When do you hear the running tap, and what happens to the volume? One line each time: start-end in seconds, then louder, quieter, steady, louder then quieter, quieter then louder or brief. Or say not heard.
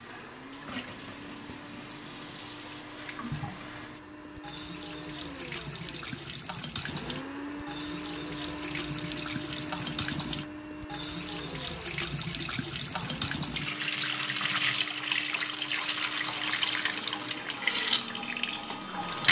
0.0-19.2 louder.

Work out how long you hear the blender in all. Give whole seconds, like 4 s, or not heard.
19 s.